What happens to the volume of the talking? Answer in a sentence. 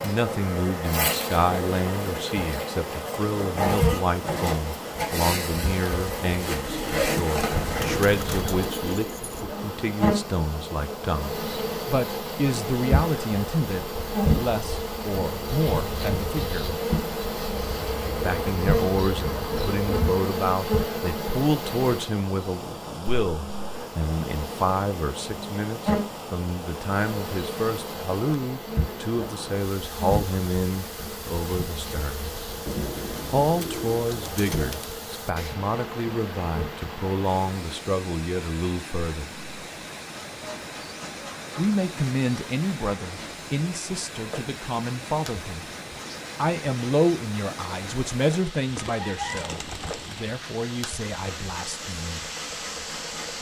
The loudness of the talking stays about the same.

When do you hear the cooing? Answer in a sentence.
You can hear the cooing from 6.5 to 9.4 s, from 17.5 to 20.2 s, from 32.6 to 35.0 s and from 48.6 to 50.4 s.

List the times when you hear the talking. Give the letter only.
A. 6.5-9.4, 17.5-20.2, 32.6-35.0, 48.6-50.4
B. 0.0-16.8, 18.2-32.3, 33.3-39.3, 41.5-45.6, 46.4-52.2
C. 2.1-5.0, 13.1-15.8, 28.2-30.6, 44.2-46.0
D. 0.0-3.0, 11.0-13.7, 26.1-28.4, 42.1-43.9
B.